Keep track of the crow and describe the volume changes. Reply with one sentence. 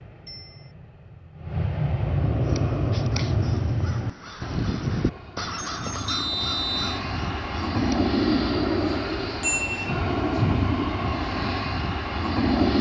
The volume of the crow goes up, then down.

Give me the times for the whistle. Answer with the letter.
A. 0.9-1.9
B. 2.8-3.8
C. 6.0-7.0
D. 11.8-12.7
C.